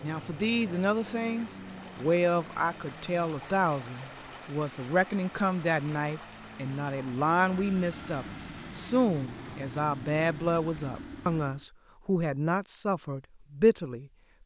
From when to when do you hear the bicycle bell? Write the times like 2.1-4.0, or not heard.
not heard.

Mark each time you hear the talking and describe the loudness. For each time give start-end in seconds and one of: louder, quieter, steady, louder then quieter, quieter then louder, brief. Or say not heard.
0.0-14.1 steady.